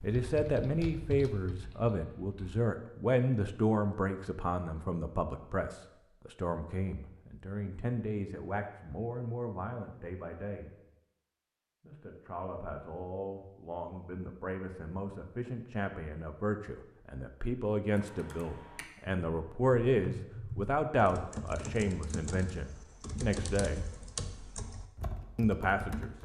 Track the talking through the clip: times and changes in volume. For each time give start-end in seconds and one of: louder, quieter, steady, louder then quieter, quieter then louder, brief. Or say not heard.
0.0-10.8 quieter
11.8-23.9 louder then quieter
25.4-26.1 brief.